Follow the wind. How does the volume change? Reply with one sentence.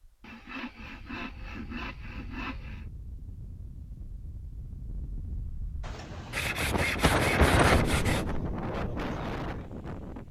The volume of the wind goes up, then down.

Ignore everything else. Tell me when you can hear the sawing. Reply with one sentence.
You can hear the sawing from 0.2 to 2.9 s and from 6.3 to 8.3 s.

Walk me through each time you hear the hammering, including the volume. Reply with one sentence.
The hammering can't be heard in this clip.